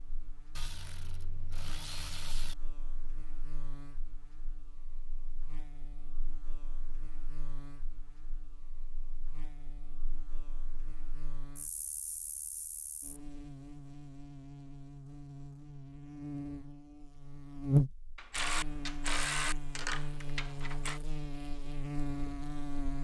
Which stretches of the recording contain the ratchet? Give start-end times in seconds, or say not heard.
0.6-2.5, 18.1-21.0.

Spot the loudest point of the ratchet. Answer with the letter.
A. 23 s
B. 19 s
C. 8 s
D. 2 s
B.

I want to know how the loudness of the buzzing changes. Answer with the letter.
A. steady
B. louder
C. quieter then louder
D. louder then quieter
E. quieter
D.